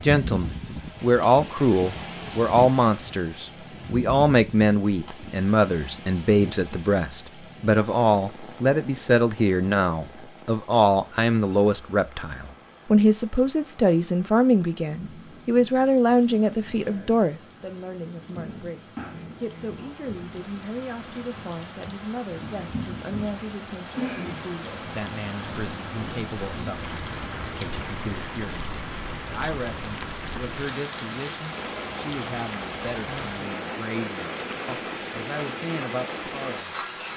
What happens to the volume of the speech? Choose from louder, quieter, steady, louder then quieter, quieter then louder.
quieter.